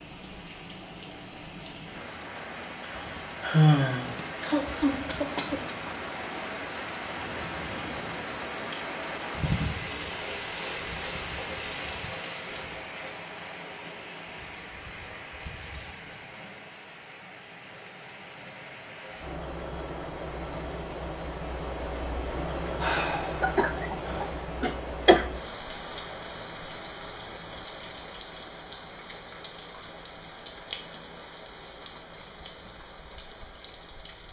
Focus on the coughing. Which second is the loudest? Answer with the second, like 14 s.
25 s.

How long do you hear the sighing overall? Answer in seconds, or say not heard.
3 s.